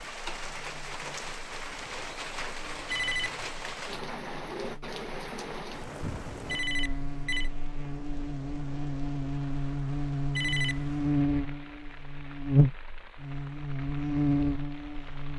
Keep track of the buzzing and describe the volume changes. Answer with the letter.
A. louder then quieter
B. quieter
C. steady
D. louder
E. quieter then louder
D.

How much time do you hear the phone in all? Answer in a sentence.
The phone can be heard for 2 seconds in total.